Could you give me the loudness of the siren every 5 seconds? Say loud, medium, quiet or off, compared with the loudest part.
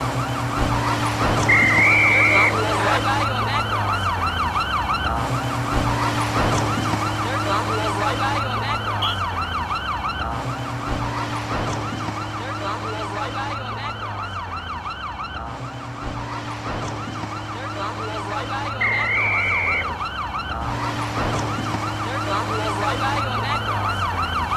loud, loud, medium, medium, loud.